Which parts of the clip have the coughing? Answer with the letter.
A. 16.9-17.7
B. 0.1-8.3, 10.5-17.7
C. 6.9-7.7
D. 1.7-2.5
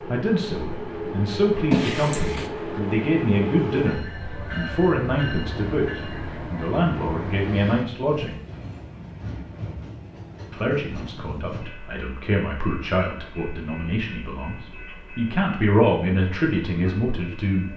D.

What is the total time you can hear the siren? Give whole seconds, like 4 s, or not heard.
not heard.